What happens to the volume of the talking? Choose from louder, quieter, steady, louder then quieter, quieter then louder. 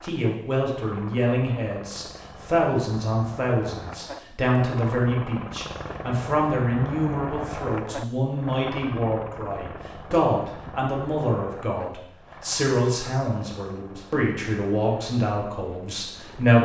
steady.